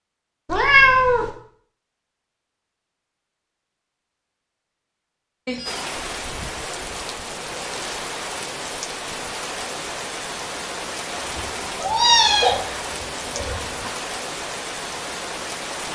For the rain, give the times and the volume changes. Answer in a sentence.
You can hear the rain from 5.7 to 15.9 s, at a steady volume.